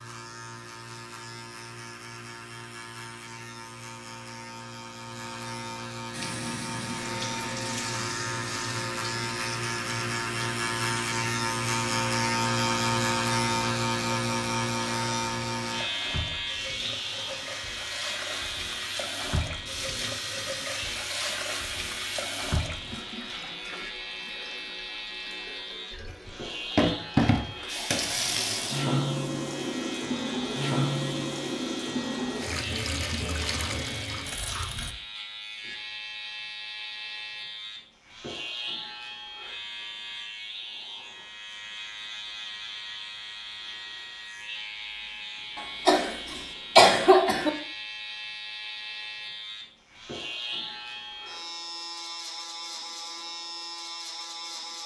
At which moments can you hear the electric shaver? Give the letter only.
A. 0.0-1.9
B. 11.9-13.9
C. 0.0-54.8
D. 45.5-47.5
C.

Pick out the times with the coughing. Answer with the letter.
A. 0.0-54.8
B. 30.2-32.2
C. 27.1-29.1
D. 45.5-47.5
D.